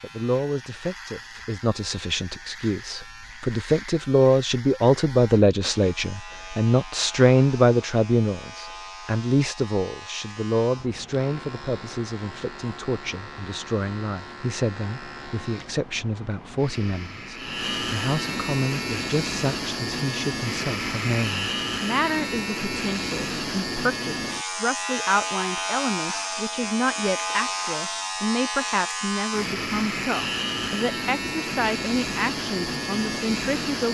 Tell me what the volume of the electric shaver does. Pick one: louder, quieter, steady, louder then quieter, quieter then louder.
louder.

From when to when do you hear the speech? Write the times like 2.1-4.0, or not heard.
0.0-33.8.